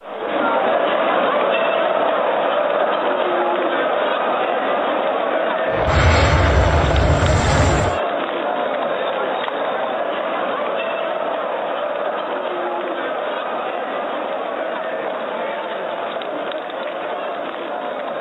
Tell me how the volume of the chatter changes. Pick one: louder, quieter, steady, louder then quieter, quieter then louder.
quieter.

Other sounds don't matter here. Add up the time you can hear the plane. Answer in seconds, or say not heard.
2 s.